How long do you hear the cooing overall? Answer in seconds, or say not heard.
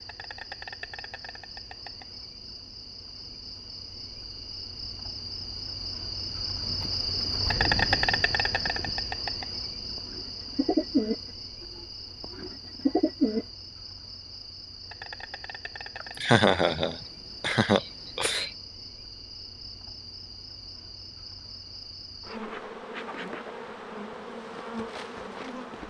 5 s.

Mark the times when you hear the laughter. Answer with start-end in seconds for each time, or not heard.
16.0-18.5.